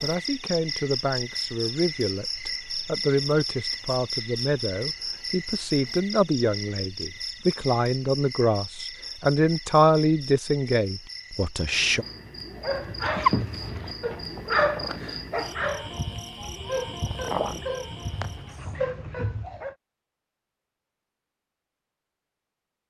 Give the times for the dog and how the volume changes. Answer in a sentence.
The dog can be heard from 12.6 to 19.8 s, getting quieter.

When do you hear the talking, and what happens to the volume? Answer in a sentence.
The talking can be heard from 0.0 to 12.1 s, getting louder.